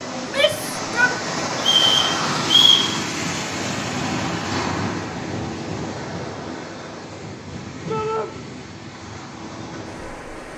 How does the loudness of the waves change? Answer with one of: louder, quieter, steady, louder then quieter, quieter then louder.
quieter.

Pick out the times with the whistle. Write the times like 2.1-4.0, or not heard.
1.6-2.9.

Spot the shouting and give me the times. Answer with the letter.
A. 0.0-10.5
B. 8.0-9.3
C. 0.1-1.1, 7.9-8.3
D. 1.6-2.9
C.